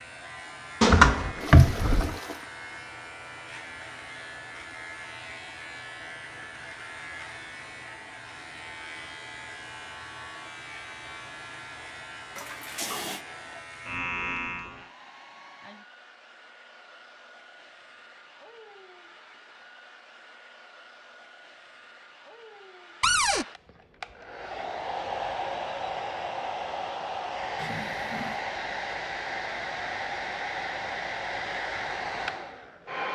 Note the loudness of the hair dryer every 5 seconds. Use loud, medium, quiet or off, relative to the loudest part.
quiet, quiet, quiet, quiet, medium, loud, loud.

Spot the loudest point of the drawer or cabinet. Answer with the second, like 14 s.
1 s.